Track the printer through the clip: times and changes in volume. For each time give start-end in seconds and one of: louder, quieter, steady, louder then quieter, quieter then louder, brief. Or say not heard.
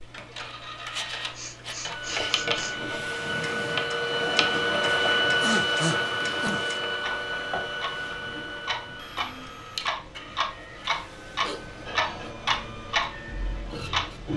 0.0-14.3 louder then quieter.